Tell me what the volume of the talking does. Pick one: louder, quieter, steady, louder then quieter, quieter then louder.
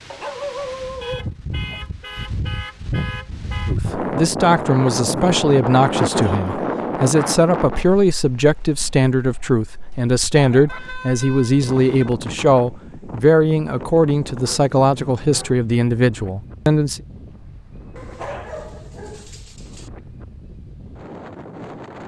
steady.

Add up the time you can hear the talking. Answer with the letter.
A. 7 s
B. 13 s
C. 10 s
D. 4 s
B.